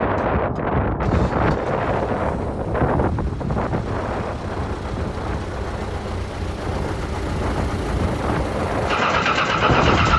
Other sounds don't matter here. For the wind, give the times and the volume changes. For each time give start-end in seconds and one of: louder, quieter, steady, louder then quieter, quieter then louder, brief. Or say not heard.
0.0-10.1 quieter then louder.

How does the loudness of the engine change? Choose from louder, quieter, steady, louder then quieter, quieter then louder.
louder.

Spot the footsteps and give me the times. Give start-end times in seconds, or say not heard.
not heard.